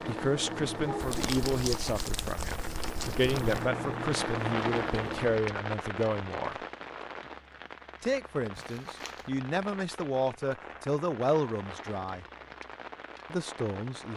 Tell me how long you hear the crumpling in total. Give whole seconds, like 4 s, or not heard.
3 s.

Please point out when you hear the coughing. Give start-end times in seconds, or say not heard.
not heard.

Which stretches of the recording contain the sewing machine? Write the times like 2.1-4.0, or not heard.
0.0-5.4.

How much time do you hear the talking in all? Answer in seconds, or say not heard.
12 s.